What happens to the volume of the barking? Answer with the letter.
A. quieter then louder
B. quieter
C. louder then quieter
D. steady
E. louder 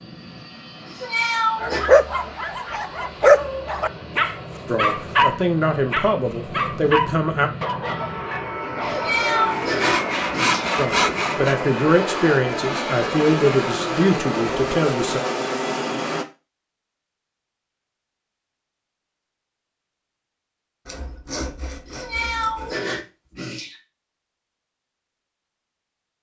B.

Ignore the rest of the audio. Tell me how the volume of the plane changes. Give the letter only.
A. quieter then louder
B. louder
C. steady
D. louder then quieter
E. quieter
B.